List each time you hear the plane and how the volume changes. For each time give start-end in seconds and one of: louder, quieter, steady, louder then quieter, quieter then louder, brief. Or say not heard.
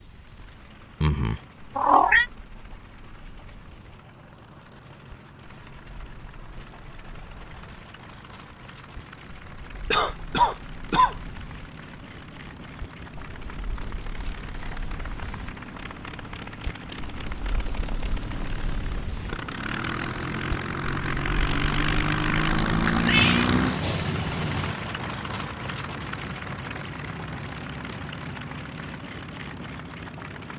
0.1-30.5 louder then quieter.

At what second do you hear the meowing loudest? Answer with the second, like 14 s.
2 s.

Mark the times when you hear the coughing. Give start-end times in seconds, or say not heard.
9.9-11.2.